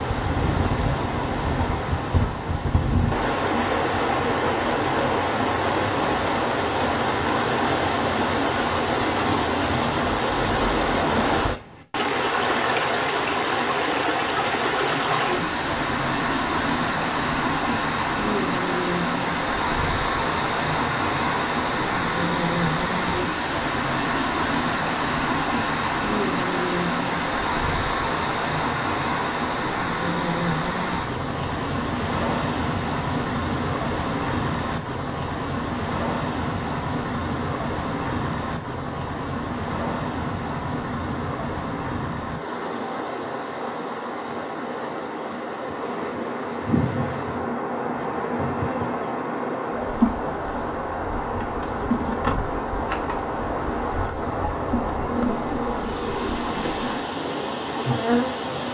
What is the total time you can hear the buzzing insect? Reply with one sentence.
You can hear the buzzing insect for 13 seconds altogether.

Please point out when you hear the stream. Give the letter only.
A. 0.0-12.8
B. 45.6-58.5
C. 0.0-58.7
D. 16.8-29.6
C.